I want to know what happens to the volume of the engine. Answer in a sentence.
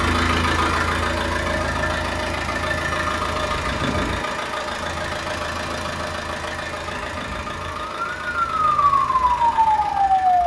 The volume of the engine goes down.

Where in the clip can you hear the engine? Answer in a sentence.
You can hear the engine from 0.0 to 10.4 s.